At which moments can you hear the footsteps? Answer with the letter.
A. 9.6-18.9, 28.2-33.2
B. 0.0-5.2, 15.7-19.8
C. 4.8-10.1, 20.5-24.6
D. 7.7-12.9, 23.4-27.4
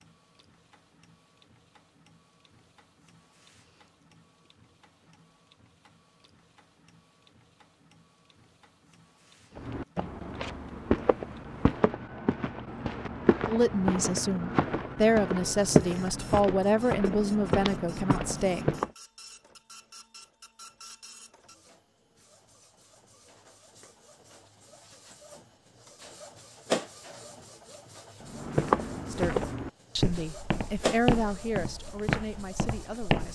A.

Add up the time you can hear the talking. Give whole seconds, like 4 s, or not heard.
9 s.